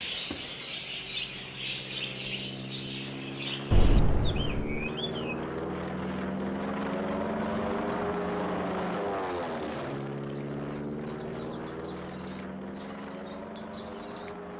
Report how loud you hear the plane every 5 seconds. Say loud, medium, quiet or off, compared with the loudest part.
medium, loud, medium.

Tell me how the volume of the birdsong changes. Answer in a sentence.
The loudness of the birdsong goes down, then up.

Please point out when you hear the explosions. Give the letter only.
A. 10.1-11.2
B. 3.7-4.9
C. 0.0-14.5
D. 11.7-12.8
B.